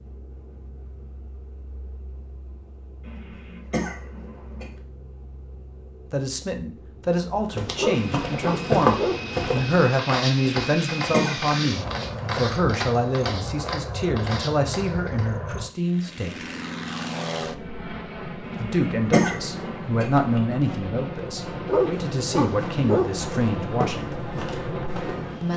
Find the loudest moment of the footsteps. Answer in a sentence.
The loudest moment of the footsteps is at 9 seconds.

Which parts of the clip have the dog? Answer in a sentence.
The dog can be heard from 7.8 to 9.3 s and from 21.6 to 23.2 s.